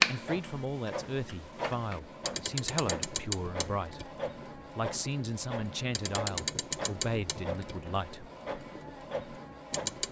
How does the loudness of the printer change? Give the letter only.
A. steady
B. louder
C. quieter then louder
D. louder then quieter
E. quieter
A.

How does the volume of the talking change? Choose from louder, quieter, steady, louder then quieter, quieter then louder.
steady.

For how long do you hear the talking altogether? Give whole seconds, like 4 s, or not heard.
8 s.